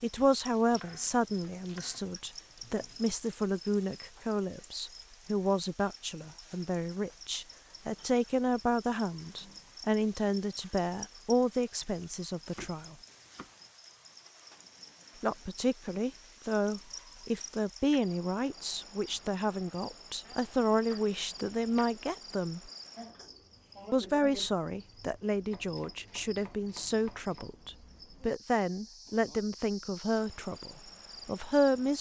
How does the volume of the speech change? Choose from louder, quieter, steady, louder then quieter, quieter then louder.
steady.